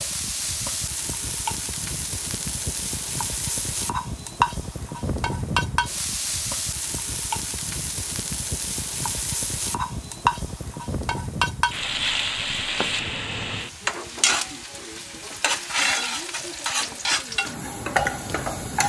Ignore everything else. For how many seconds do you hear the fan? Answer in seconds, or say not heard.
19 s.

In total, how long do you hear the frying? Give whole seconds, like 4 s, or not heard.
19 s.